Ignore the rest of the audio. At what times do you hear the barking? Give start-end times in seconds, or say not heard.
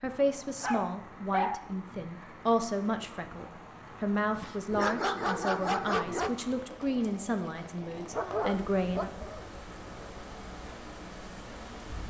0.6-1.6, 4.3-6.3, 8.1-9.5.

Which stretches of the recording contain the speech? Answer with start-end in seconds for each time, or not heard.
0.0-9.1.